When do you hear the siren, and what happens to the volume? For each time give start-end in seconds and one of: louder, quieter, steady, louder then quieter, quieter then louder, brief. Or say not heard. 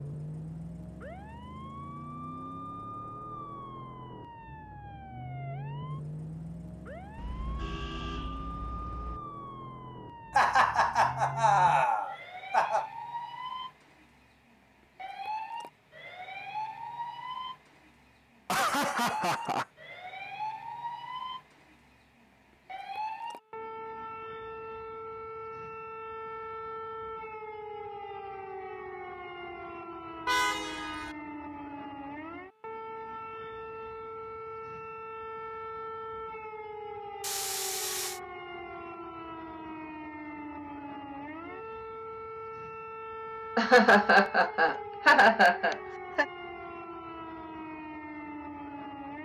0.0-49.2 steady.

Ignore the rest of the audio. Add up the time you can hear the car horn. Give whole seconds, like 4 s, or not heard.
4 s.